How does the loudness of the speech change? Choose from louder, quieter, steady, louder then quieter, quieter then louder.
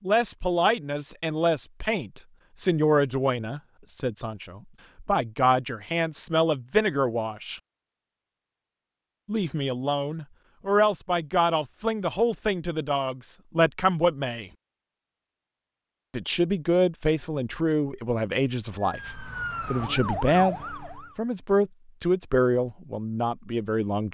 steady.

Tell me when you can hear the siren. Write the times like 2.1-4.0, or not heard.
18.8-21.1.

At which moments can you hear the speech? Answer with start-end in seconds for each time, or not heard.
0.0-7.6, 9.2-14.5, 16.1-24.0.